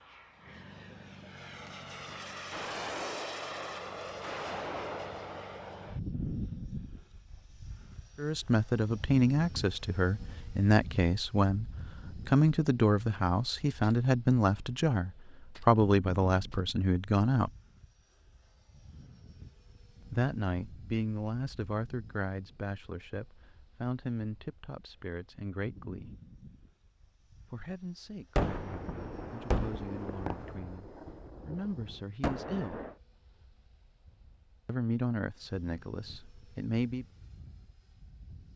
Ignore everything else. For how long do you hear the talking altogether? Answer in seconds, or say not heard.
23 s.